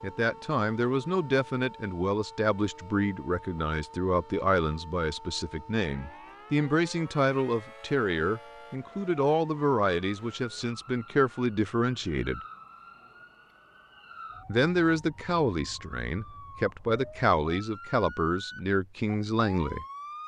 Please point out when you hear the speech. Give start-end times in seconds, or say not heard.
0.0-12.4, 14.4-19.9.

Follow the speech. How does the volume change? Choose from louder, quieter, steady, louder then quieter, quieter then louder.
steady.